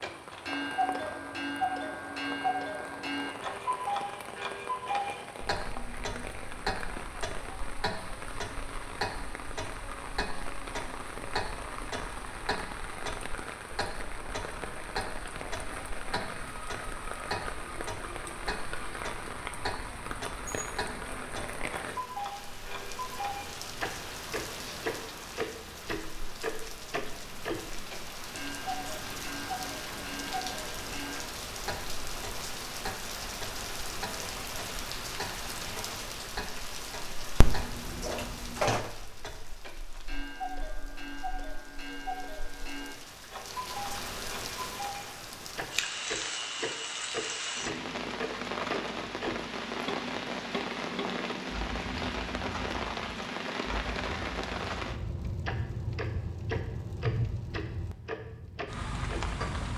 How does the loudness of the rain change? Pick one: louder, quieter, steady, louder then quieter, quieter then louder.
louder.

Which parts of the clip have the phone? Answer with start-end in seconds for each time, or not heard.
37.4-38.9.